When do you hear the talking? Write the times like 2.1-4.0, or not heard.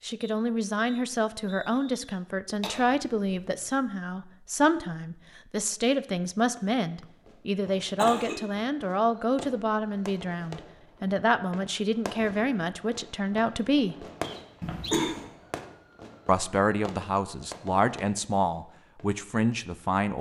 0.0-13.9, 16.2-20.1.